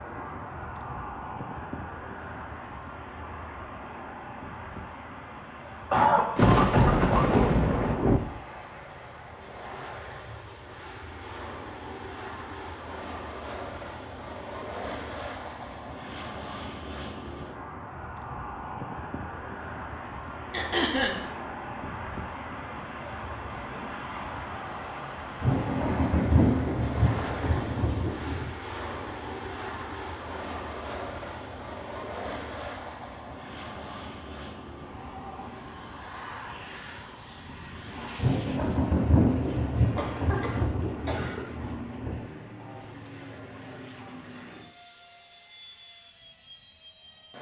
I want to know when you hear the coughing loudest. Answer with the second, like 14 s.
6 s.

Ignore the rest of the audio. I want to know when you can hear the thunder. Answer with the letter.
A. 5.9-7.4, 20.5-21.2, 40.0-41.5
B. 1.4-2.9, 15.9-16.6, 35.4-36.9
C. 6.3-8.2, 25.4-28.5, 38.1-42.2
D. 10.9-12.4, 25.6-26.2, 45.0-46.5
C.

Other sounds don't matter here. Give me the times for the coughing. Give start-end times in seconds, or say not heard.
5.9-7.4, 20.5-21.2, 40.0-41.5.